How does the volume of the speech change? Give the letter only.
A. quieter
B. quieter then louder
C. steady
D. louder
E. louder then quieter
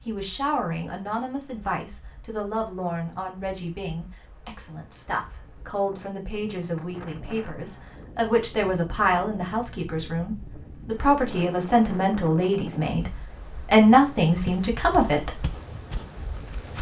D.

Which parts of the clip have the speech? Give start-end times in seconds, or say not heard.
0.0-15.4.